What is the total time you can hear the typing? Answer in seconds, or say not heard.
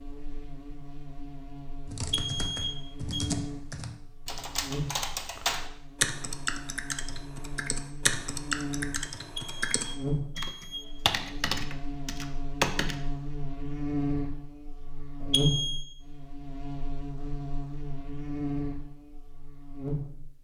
11 s.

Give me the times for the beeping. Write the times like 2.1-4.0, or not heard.
2.0-3.3, 9.2-10.9, 15.2-15.8.